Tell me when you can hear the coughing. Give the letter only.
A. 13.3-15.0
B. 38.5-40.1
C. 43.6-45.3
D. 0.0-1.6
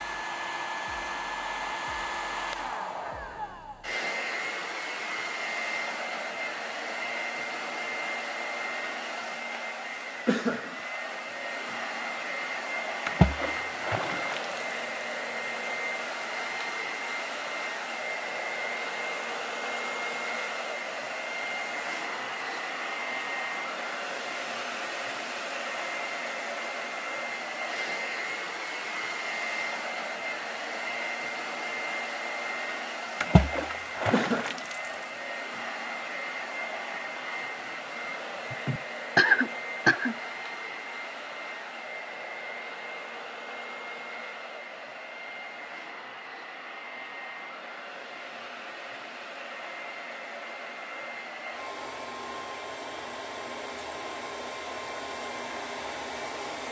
B.